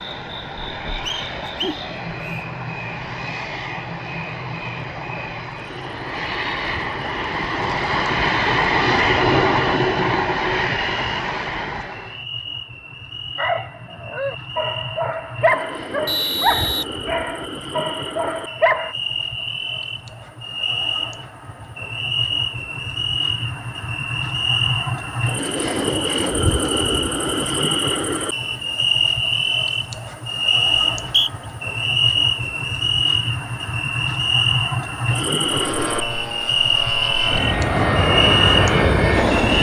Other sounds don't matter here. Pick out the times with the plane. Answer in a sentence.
You can hear the plane from 0.0 to 12.2 s and from 35.4 to 39.5 s.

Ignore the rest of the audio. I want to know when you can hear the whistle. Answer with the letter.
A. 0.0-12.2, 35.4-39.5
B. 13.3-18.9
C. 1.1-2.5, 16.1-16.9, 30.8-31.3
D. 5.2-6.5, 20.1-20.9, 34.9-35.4
C.